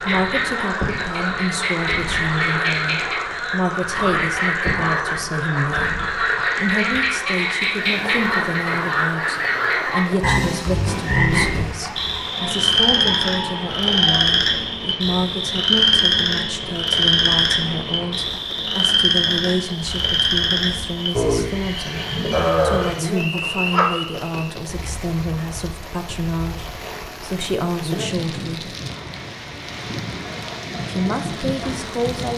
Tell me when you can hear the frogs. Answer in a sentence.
The frogs can be heard from 0.0 to 24.5 s.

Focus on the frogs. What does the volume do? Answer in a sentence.
The loudness of the frogs stays about the same.